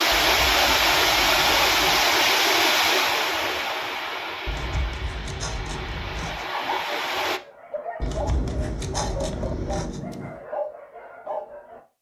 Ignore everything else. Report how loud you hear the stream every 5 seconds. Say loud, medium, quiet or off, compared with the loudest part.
loud, medium, off.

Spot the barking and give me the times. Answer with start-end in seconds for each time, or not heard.
6.5-11.8.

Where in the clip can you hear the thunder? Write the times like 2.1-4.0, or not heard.
8.0-10.4.